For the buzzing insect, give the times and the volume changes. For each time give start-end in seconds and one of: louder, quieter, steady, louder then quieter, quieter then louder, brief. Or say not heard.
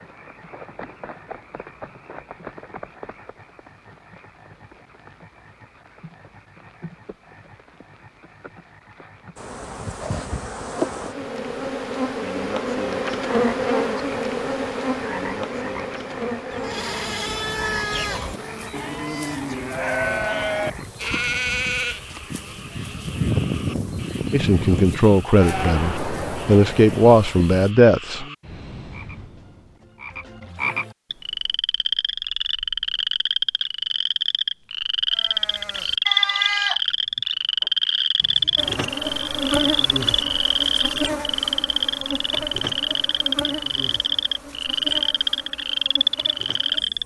9.3-27.8 quieter
38.5-47.0 quieter.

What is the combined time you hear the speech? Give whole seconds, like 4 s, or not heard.
4 s.